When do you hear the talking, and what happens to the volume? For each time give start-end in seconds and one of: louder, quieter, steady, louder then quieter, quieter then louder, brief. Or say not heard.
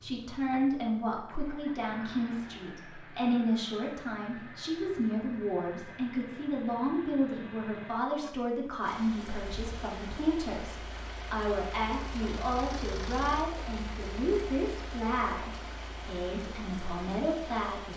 0.0-17.9 steady.